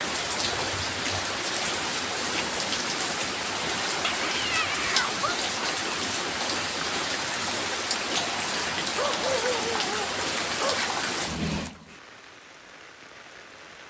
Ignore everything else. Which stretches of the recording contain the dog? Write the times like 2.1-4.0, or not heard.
3.9-5.4, 8.9-10.9.